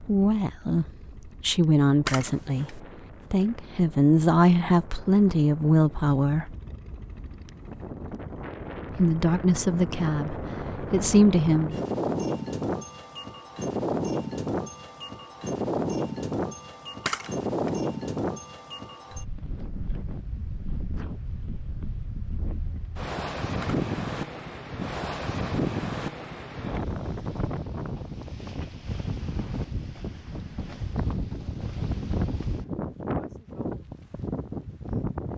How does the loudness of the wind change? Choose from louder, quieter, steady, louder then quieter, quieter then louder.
louder.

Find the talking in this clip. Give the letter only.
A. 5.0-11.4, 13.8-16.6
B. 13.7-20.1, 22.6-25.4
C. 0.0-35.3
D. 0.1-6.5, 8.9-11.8
D.